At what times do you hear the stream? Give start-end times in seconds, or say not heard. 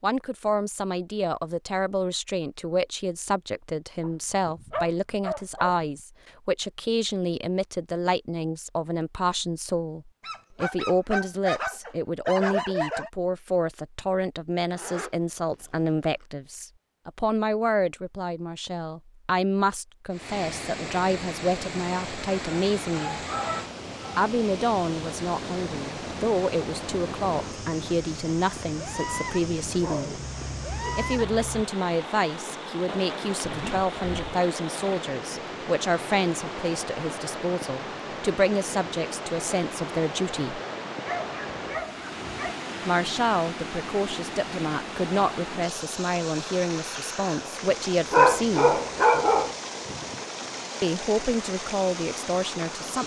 20.1-53.0.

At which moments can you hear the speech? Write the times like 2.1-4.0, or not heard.
0.0-23.2, 24.1-30.2, 30.9-40.6, 42.9-48.8, 50.8-53.0.